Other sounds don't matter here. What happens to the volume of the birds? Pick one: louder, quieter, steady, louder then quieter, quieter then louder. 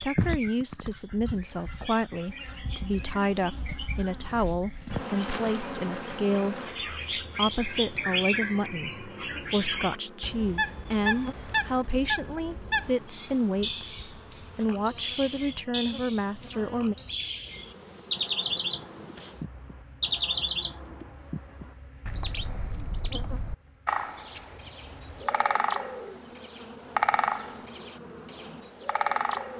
louder.